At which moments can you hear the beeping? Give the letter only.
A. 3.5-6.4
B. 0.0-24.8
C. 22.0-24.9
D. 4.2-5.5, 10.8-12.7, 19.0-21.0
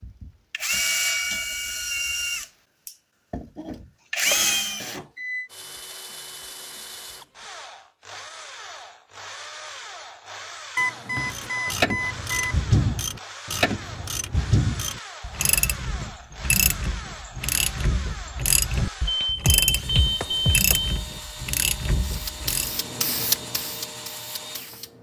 D.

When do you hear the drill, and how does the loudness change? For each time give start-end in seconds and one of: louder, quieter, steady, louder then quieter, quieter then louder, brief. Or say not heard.
0.0-24.8 quieter.